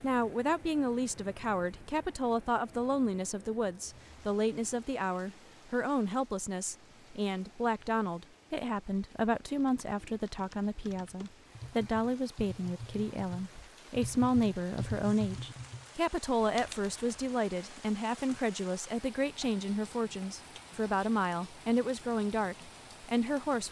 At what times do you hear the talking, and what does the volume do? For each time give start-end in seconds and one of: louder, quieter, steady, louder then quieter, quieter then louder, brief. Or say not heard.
0.0-23.6 steady.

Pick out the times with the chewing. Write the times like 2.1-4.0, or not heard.
not heard.